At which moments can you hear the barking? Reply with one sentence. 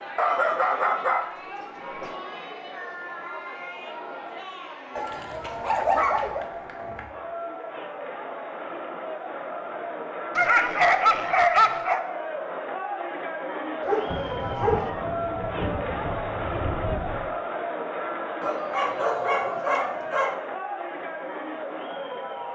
You can hear the barking from 0.1 to 2.1 s, from 5.0 to 6.5 s, from 10.3 to 12.0 s, from 13.8 to 14.9 s and from 18.4 to 20.4 s.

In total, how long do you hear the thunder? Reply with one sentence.
The thunder can be heard for 3 seconds in total.